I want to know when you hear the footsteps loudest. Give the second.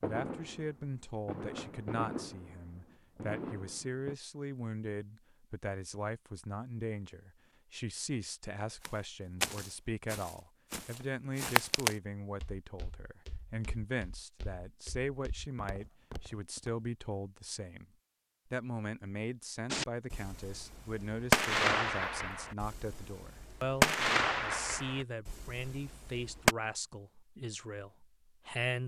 12 s.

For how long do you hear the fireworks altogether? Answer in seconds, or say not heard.
11 s.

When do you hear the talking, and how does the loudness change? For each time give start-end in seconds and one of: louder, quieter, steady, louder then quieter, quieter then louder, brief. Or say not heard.
0.0-17.9 steady
18.5-28.8 steady.